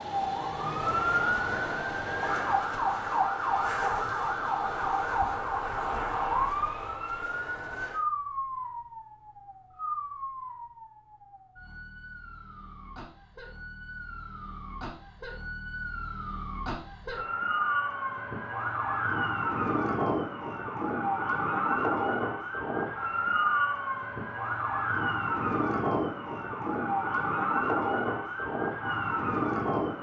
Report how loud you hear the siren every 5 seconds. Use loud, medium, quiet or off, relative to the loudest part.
loud, loud, quiet, loud, loud, loud.